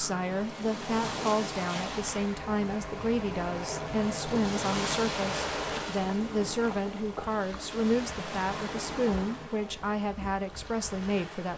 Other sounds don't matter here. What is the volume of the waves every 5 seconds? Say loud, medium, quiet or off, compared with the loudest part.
loud, loud, medium.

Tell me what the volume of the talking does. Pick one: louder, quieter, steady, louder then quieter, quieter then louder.
steady.